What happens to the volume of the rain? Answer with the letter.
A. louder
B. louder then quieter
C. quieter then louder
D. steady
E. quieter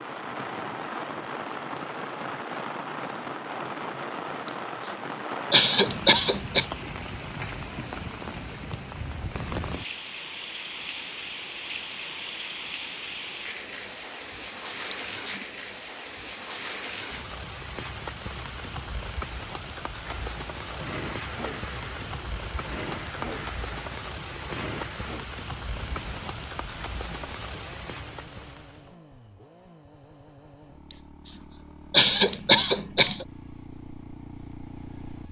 D.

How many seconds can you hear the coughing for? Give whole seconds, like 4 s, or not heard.
5 s.